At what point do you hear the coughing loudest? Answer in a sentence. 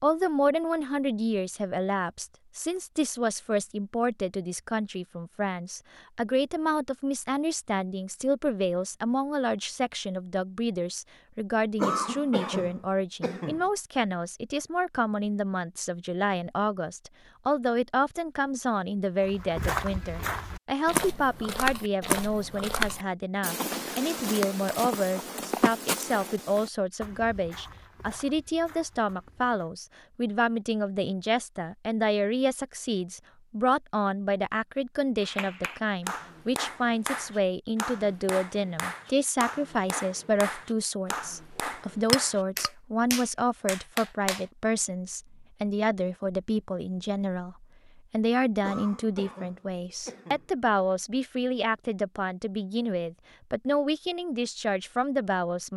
The loudest moment of the coughing is at 12 seconds.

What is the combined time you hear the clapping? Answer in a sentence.
The clapping can be heard for 9 seconds in total.